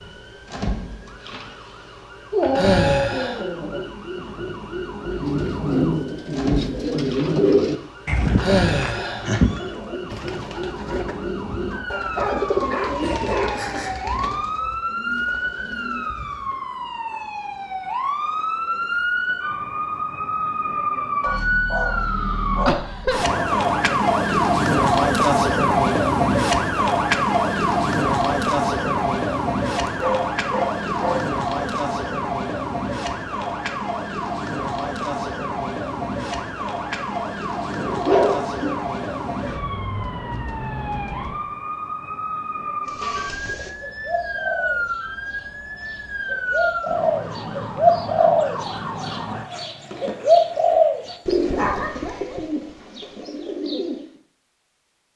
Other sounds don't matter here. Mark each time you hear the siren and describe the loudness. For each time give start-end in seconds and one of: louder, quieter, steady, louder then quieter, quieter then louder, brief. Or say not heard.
0.0-49.5 louder then quieter.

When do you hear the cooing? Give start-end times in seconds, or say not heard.
5.2-16.5, 42.9-54.0.